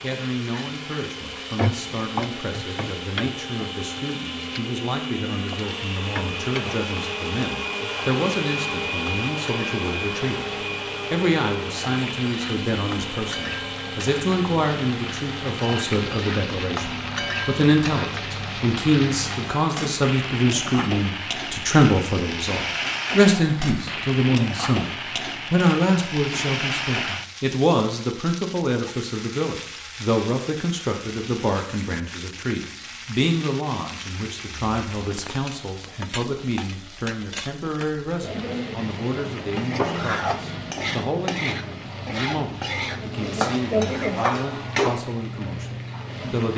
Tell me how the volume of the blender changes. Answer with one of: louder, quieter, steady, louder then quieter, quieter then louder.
louder then quieter.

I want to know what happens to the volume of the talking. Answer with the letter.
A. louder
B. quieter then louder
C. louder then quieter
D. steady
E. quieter
C.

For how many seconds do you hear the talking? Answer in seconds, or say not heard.
45 s.